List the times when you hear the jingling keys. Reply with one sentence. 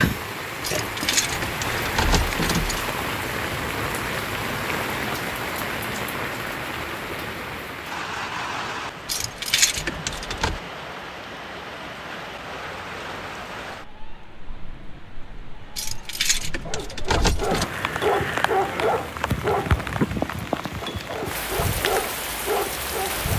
The jingling keys can be heard from 0.6 to 3.0 s, from 9.1 to 10.6 s and from 15.8 to 17.7 s.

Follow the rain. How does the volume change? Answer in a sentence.
The volume of the rain goes down, then up.